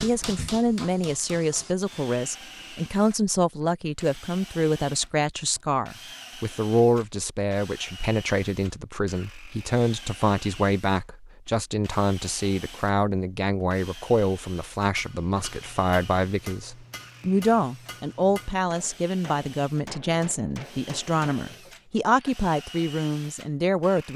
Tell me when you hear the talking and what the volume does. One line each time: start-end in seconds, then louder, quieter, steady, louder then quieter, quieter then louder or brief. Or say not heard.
0.0-24.1 steady.